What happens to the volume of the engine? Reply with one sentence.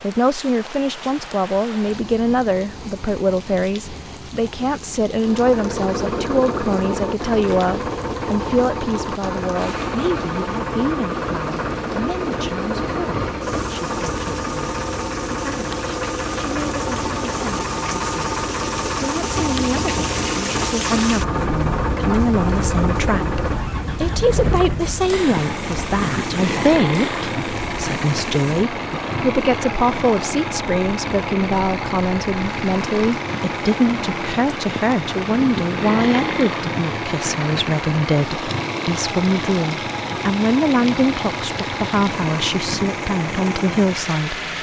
The loudness of the engine stays about the same.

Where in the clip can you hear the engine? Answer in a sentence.
The engine can be heard from 5.0 to 44.5 s.